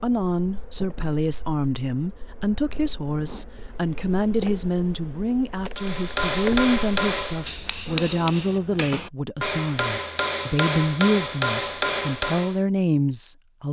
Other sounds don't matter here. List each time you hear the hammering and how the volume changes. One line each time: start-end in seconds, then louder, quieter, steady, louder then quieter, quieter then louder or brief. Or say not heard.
5.8-12.6 quieter then louder.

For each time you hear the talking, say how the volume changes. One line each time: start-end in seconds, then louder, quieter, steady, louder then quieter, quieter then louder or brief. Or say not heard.
0.0-13.6 steady.